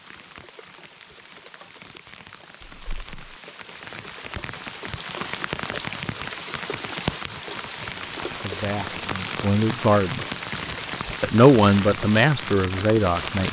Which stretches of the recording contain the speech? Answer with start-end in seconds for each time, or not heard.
8.0-10.2, 11.2-13.4.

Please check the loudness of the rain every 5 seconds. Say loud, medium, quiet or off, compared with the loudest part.
medium, loud, loud.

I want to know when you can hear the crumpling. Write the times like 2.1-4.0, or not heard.
2.6-3.4.